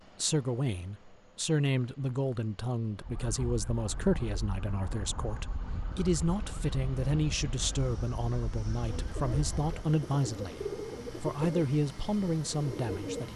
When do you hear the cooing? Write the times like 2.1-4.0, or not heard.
8.8-13.3.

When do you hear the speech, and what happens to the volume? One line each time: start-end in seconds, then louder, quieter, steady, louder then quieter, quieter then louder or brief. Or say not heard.
0.2-13.3 steady.